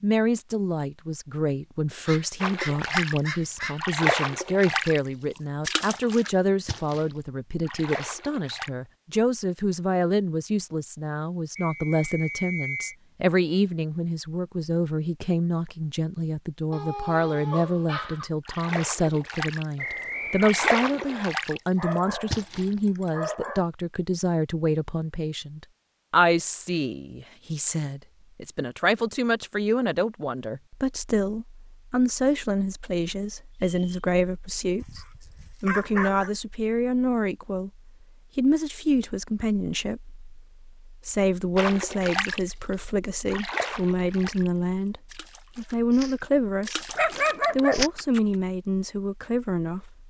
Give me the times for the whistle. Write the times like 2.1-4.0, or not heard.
11.6-12.9, 19.8-21.3, 33.5-34.1.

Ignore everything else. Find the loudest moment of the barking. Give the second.
47 s.